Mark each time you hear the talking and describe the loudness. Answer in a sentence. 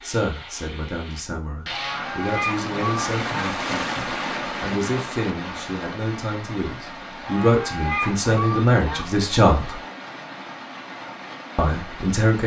You can hear the talking from 0.0 to 9.8 s, getting louder; and briefly from 11.6 to 12.4 s.